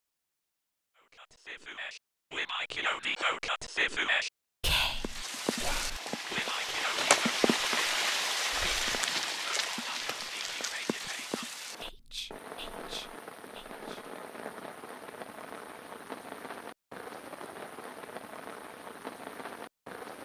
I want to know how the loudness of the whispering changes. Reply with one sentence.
The loudness of the whispering goes down.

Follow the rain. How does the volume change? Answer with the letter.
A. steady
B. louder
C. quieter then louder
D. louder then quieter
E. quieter
E.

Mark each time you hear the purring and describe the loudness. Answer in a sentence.
You can't hear the purring here.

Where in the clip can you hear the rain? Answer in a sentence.
You can hear the rain from 4.8 to 20.2 s.